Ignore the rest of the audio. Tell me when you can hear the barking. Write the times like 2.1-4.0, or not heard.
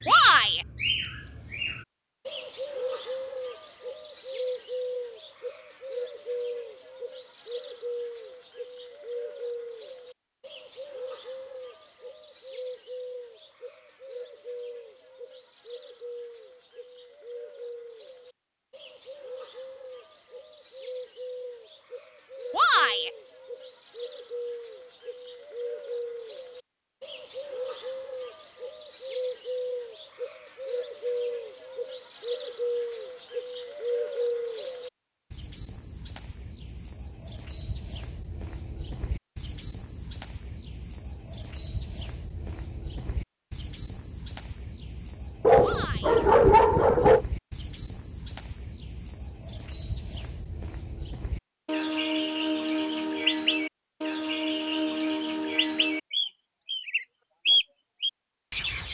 45.4-47.2.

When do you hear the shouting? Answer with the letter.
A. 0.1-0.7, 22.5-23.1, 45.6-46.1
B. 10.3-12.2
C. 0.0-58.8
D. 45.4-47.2
A.